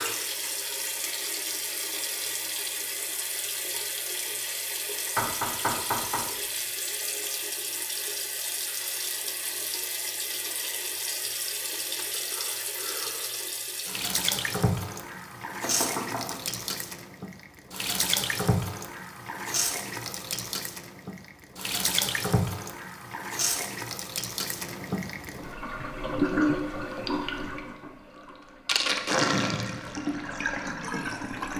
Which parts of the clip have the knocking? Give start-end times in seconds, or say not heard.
5.2-6.3, 15.6-16.4, 26.1-27.1.